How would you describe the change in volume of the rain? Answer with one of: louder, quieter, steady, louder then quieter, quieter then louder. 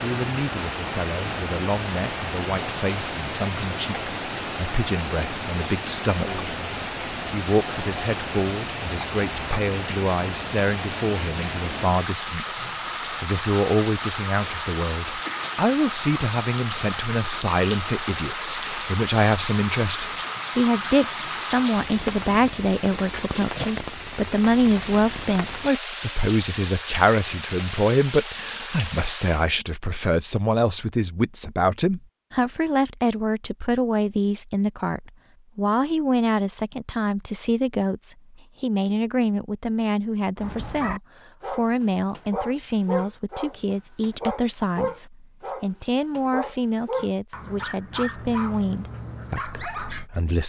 steady.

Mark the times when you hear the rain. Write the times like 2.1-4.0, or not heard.
0.0-29.5.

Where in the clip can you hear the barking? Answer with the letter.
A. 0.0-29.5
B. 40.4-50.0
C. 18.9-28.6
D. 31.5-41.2
B.